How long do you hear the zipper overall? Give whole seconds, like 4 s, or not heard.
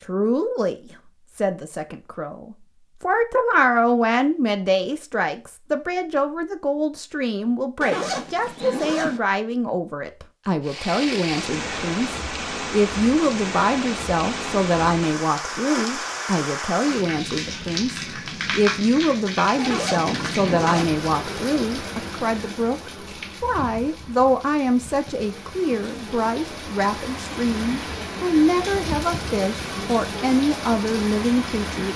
3 s.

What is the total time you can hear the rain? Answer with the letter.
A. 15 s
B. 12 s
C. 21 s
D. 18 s
C.